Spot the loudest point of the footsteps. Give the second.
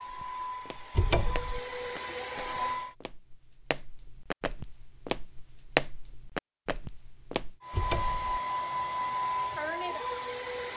6 s.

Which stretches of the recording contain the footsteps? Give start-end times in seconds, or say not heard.
0.1-7.5.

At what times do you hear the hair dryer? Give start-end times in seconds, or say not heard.
0.0-3.0, 7.6-10.7.